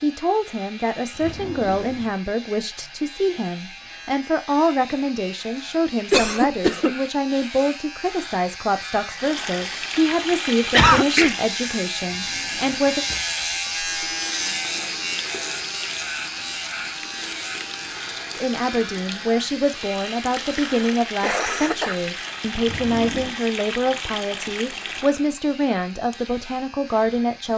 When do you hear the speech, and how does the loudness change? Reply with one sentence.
You can hear the speech from 0.0 to 13.1 s, at a steady volume; and from 18.4 to 27.5 s, at a steady volume.